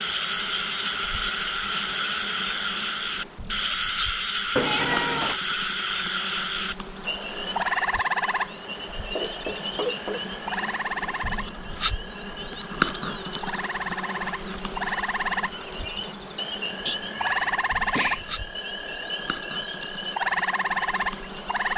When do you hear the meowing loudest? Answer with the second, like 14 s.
5 s.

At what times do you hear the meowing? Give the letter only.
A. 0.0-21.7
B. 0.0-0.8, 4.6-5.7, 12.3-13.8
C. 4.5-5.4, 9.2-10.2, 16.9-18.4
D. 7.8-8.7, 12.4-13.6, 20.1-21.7
C.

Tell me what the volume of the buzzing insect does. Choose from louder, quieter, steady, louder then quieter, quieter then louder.
louder then quieter.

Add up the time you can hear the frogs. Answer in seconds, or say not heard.
22 s.